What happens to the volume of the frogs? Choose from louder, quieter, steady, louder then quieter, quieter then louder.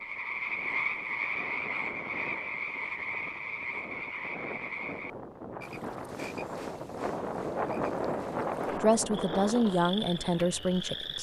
quieter then louder.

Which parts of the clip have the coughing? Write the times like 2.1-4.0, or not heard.
not heard.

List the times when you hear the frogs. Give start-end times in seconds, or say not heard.
0.0-11.1.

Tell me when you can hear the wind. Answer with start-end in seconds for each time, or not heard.
0.0-11.1.